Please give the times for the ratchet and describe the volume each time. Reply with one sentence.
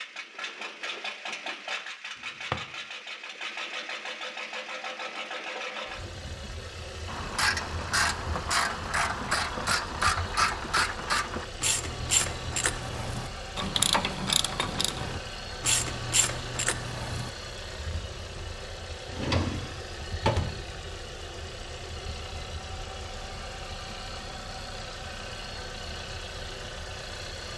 The ratchet can be heard from 7.0 to 17.3 s, at a steady volume.